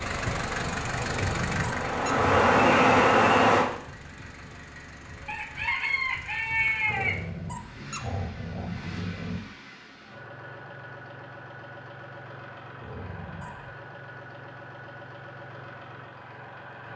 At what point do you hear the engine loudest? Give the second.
1 s.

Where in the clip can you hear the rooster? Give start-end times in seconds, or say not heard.
5.2-7.2.